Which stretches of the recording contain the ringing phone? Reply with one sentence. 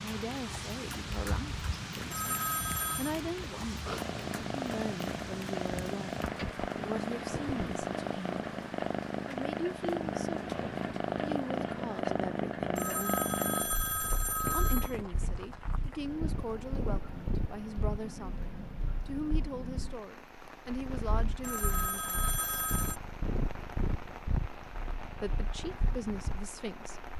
The ringing phone can be heard from 2.1 to 3.1 s, from 12.8 to 14.9 s and from 21.4 to 23.0 s.